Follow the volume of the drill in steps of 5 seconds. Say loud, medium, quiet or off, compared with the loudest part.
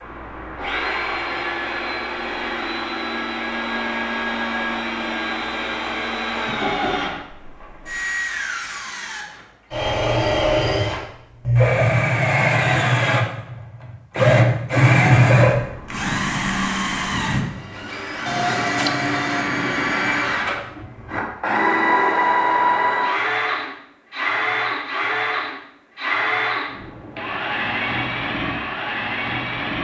medium, medium, loud, loud, loud, medium.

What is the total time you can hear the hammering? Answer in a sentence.
You can hear the hammering for 2 seconds altogether.